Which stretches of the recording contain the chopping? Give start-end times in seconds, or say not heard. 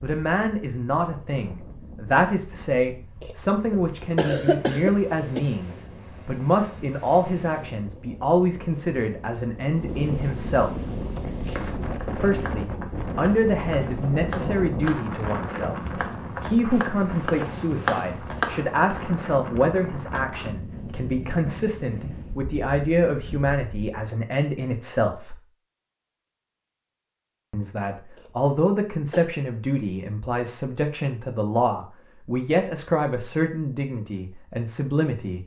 11.2-18.8.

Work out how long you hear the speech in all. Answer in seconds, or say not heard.
32 s.